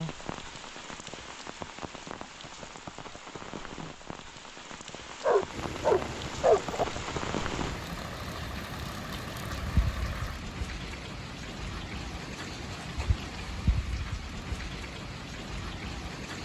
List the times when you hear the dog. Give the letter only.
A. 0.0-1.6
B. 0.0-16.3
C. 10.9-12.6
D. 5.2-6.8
D.